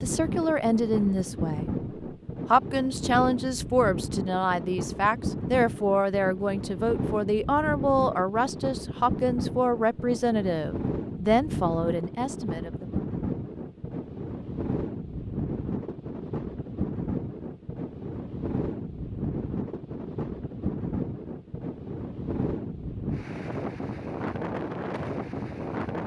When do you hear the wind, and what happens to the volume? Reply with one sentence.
You can hear the wind from 0.0 to 26.0 s, at a steady volume.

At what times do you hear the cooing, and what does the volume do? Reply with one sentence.
You can't hear the cooing here.